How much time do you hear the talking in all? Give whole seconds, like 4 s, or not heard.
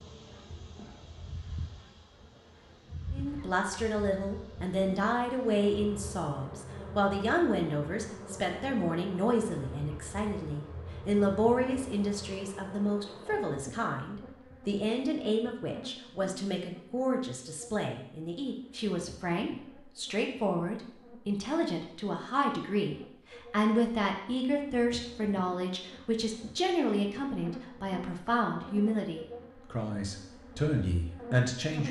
29 s.